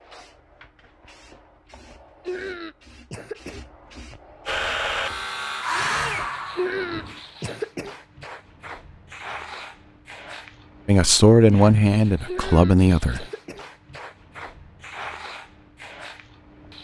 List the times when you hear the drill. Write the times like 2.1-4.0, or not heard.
4.5-7.3.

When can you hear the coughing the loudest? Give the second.
7 s.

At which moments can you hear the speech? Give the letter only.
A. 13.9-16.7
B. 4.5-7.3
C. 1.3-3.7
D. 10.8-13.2
D.